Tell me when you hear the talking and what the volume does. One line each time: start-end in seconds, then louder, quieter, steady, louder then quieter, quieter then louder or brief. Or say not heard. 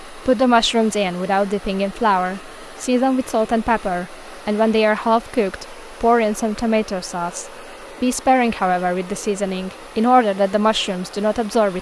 0.1-11.7 steady.